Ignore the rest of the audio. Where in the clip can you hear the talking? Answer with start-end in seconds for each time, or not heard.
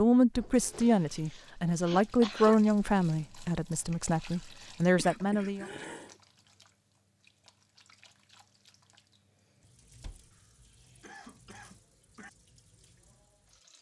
0.0-5.7.